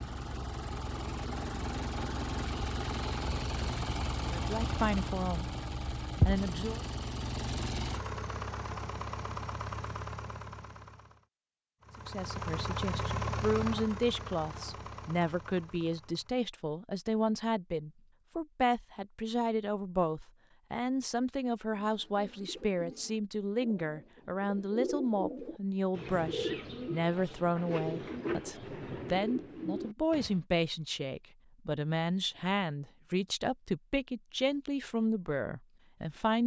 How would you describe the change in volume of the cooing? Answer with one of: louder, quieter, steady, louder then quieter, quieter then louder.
louder.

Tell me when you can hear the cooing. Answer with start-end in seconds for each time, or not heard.
21.7-30.4.